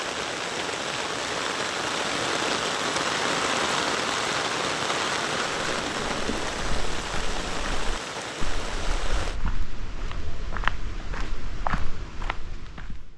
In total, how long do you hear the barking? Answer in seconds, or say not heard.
not heard.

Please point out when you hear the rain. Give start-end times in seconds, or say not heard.
0.0-9.4.